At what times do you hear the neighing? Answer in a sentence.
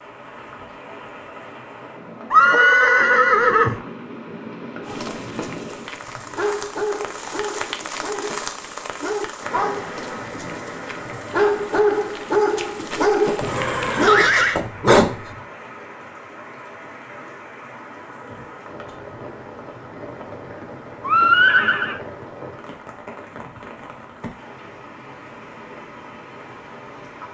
The neighing can be heard from 2.3 to 3.8 s, from 13.4 to 14.6 s and from 21.1 to 22.0 s.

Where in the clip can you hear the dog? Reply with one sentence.
You can hear the dog from 4.8 to 15.3 s.